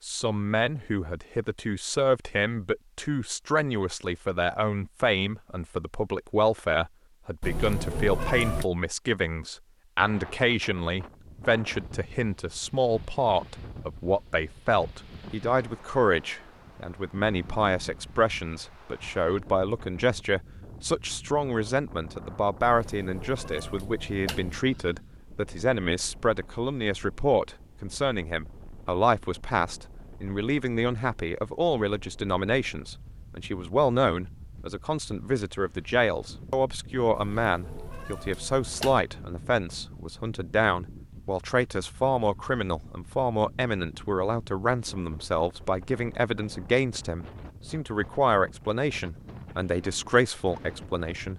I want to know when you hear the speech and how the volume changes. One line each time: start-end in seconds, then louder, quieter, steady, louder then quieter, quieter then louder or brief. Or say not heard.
0.0-51.3 steady.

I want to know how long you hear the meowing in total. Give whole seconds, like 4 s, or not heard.
5 s.